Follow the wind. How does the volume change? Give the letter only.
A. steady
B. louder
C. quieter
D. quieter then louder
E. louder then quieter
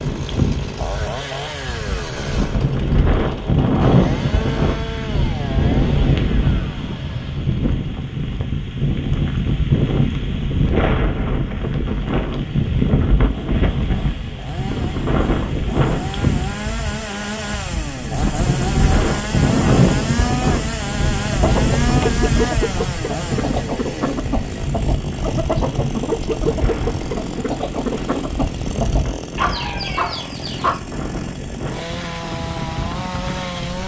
C.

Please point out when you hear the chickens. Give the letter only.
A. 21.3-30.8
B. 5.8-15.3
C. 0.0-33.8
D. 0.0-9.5
A.